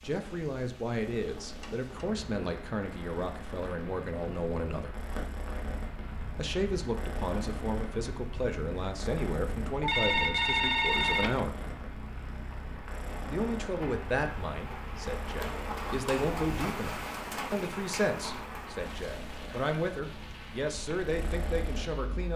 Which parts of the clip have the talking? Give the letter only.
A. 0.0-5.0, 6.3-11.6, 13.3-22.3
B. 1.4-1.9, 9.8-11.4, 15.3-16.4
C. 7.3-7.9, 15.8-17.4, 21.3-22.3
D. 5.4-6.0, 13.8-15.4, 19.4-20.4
A.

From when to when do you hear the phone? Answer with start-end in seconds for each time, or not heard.
1.4-1.9, 9.8-11.4, 15.3-16.4.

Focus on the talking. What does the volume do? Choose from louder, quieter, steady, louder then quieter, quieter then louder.
steady.